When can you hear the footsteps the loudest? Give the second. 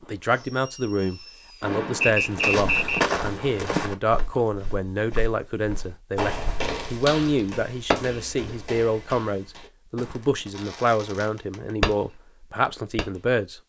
3 s.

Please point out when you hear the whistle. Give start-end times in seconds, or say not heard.
2.0-3.0.